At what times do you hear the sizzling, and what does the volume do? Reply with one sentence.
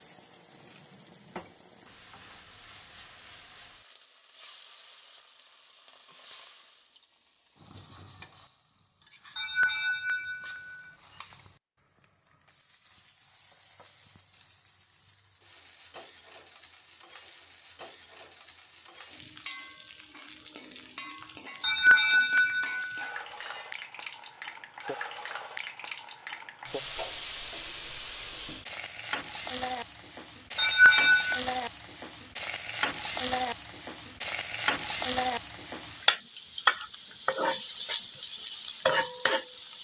The sizzling can be heard from 0.0 to 39.7 s, getting louder.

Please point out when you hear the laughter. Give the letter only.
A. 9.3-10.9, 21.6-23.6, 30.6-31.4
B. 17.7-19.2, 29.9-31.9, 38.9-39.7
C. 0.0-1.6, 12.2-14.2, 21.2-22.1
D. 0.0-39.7
A.